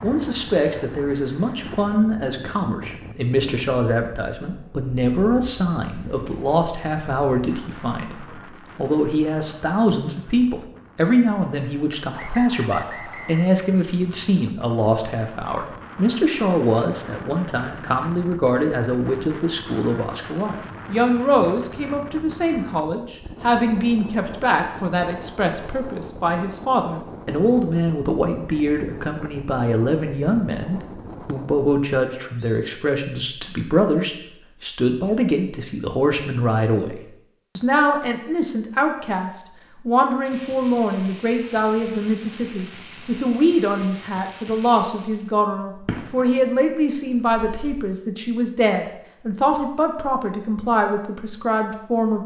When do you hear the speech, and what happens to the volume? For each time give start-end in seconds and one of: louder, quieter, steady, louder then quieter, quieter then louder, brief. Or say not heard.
0.0-52.2 steady.